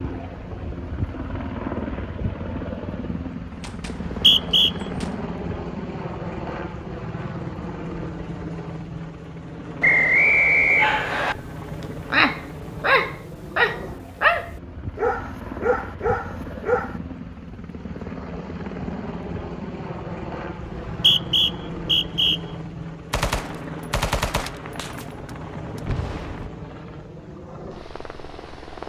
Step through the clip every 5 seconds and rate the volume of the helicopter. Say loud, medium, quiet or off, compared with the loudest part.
loud, loud, medium, loud, loud, medium.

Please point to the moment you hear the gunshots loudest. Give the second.
24 s.